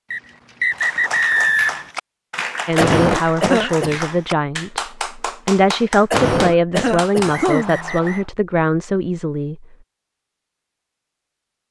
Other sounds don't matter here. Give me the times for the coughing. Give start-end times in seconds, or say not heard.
2.8-4.0, 6.1-7.9.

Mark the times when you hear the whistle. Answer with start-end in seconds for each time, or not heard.
0.1-1.9, 7.3-8.2.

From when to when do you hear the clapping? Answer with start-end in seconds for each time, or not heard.
0.7-7.5.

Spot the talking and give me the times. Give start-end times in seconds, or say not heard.
2.6-9.7.